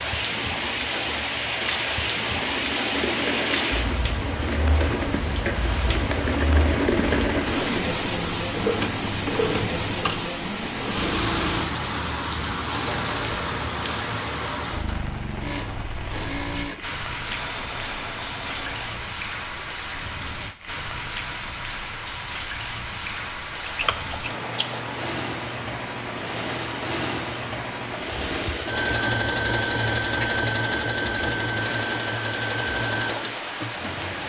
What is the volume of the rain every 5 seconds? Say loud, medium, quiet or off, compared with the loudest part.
loud, loud, loud, medium, medium, medium, medium.